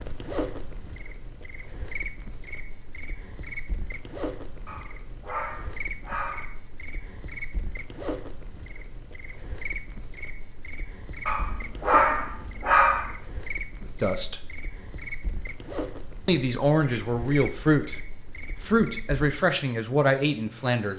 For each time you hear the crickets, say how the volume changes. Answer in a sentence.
The crickets can be heard from 0.0 to 20.9 s, at a steady volume.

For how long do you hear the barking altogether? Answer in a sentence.
You can hear the barking for 4 seconds altogether.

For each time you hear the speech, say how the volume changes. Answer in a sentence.
The speech can be heard briefly from 13.8 to 14.4 s; and from 16.2 to 20.9 s, at a steady volume.